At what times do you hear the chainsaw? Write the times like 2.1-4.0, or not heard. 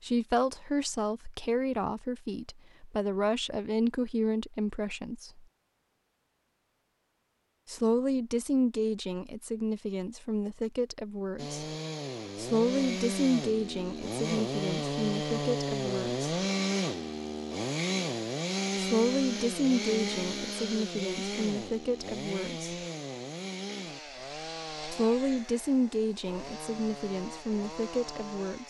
11.3-28.6.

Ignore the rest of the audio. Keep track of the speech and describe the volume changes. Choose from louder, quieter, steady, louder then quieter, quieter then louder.
steady.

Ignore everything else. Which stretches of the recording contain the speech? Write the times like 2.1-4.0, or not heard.
0.0-5.5, 7.7-11.7, 12.3-16.4, 18.8-22.8, 24.9-28.6.